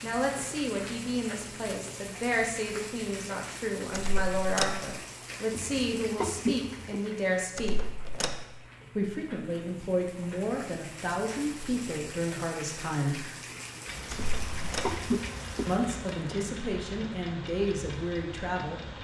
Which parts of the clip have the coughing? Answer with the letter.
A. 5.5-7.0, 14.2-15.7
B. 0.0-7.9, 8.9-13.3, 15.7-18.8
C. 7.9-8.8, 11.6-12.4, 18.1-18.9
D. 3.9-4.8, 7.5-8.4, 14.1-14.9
A.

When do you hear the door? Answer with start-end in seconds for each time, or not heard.
3.9-4.8, 7.5-8.4, 14.1-14.9.